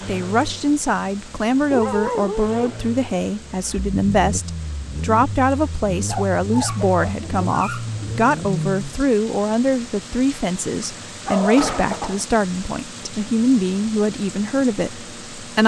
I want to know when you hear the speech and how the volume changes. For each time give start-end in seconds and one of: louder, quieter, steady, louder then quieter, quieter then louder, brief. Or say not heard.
0.1-15.6 steady.